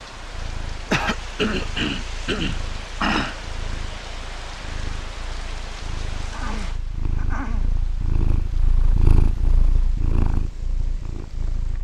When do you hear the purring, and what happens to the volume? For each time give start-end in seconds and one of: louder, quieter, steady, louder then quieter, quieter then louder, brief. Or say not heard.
0.2-11.7 louder.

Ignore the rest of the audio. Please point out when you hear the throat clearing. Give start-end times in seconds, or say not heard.
0.9-3.4, 6.3-7.7.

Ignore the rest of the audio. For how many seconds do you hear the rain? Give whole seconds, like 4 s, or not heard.
12 s.